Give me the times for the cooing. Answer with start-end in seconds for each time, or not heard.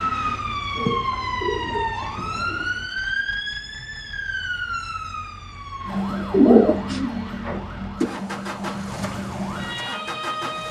0.8-2.6, 6.1-8.1.